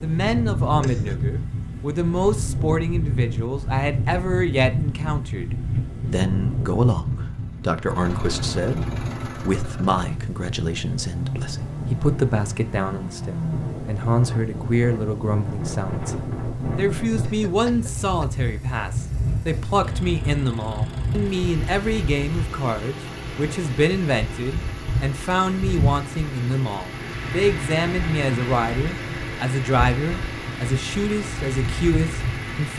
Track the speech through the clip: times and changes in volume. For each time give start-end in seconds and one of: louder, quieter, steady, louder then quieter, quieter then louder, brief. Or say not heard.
0.0-32.7 steady.